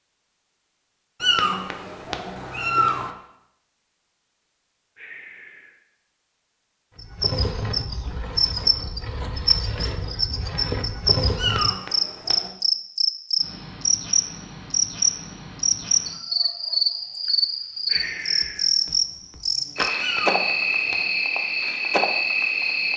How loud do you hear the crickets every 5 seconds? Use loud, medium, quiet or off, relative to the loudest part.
off, loud, loud, loud, loud.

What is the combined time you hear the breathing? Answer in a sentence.
You can hear the breathing for 2 seconds altogether.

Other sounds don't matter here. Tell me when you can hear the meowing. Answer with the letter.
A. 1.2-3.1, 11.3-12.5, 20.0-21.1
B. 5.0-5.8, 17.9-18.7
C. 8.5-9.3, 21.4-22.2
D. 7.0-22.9
A.